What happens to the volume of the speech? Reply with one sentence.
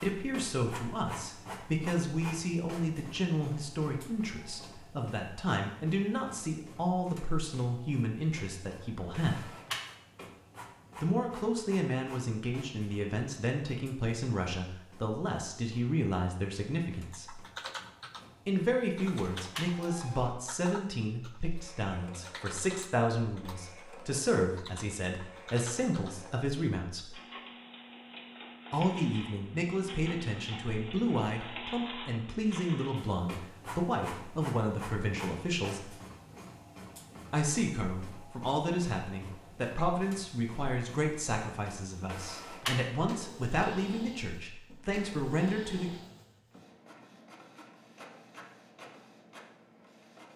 The loudness of the speech stays about the same.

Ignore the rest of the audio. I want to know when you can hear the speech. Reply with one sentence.
The speech can be heard from 0.0 to 9.5 s, from 11.0 to 17.4 s, from 18.4 to 27.1 s, from 28.7 to 36.0 s and from 37.3 to 46.0 s.